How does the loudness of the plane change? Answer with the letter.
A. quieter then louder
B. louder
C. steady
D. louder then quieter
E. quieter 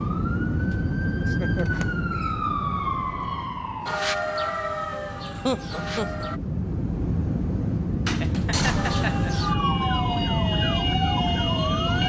A.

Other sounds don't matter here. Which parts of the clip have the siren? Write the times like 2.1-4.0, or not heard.
0.0-6.4, 8.8-12.0.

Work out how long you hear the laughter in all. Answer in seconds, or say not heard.
3 s.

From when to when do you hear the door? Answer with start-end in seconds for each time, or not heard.
1.6-3.5, 8.1-9.2.